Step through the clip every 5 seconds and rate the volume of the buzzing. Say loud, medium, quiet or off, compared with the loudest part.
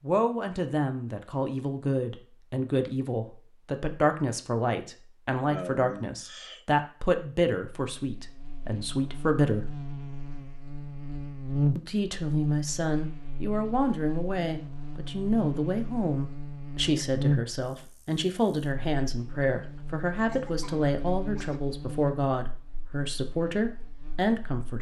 off, medium, loud, loud, medium.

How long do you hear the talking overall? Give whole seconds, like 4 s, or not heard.
23 s.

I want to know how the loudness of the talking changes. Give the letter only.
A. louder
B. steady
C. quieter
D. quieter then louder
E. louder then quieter
B.